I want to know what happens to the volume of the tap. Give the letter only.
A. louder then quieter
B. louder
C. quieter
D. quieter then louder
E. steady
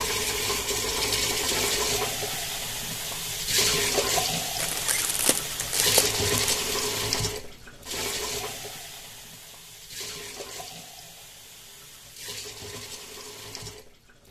C.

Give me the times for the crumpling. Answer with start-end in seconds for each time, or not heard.
4.5-6.5.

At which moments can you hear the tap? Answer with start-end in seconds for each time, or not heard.
0.0-14.2.